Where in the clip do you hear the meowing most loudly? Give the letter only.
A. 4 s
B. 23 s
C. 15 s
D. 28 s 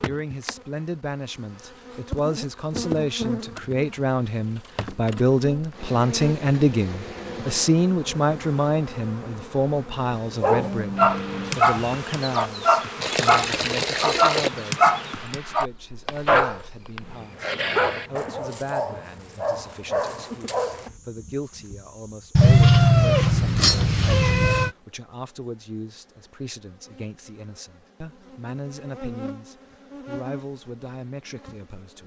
B.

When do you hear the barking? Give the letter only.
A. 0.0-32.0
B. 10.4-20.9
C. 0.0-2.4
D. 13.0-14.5
B.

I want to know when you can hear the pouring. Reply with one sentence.
The pouring can be heard from 13.0 to 14.5 s.